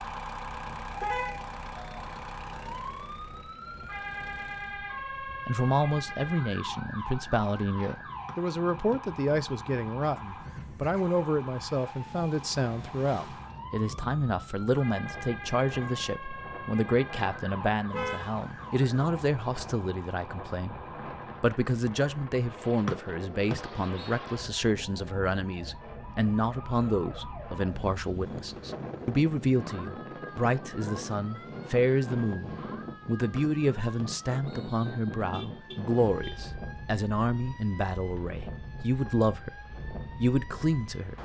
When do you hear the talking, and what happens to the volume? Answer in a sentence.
The talking can be heard from 5.5 to 20.8 s, at a steady volume; and from 21.4 to 41.2 s, at a steady volume.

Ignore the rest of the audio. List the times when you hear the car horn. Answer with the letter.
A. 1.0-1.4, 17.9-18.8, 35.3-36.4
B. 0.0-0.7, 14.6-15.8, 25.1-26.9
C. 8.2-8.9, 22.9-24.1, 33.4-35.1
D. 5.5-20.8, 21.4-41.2
A.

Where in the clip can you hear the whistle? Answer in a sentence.
The whistle can be heard from 8.2 to 8.9 s, from 22.9 to 24.1 s and from 33.4 to 35.1 s.